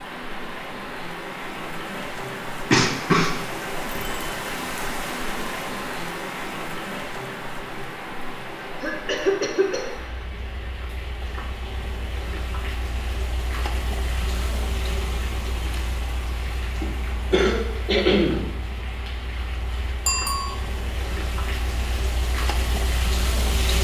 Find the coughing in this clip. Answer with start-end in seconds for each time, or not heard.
2.7-3.4, 8.6-10.2, 16.8-18.4.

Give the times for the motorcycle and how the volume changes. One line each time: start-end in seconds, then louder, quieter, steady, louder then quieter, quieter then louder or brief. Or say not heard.
not heard.